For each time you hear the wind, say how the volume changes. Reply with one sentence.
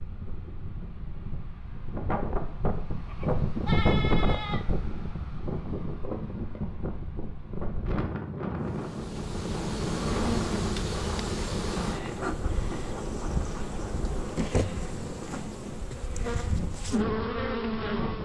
You can hear the wind from 0.0 to 18.2 s, getting quieter.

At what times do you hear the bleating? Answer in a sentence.
The bleating can be heard from 3.0 to 4.6 s.